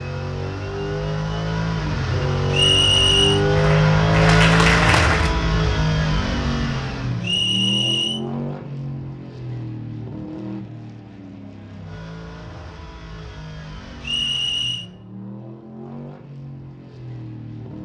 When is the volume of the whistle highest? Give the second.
3 s.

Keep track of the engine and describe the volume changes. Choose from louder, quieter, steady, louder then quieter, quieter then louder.
quieter.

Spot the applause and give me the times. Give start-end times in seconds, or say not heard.
3.5-5.3.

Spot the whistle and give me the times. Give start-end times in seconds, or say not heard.
2.5-3.4, 7.2-8.2, 14.0-14.8.